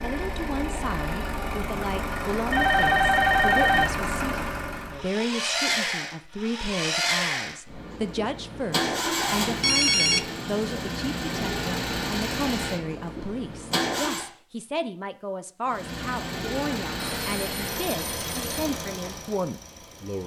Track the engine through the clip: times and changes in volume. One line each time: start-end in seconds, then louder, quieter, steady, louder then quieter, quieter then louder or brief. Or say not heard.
0.0-14.3 steady
15.7-20.2 quieter.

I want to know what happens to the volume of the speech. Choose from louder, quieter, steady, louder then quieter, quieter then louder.
steady.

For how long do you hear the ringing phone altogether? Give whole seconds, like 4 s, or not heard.
4 s.